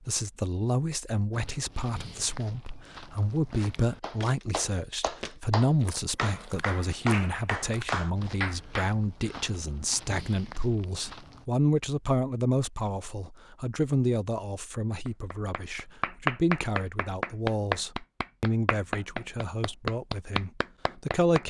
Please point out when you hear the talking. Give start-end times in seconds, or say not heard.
0.1-21.4.